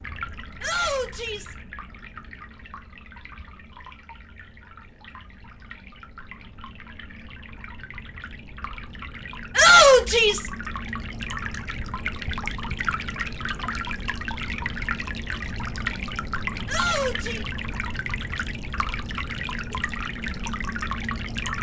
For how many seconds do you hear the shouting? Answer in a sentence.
The shouting can be heard for 3 seconds in total.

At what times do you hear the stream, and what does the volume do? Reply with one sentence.
You can hear the stream from 0.0 to 21.5 s, getting louder.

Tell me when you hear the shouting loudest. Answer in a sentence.
The loudest moment of the shouting is at 10 seconds.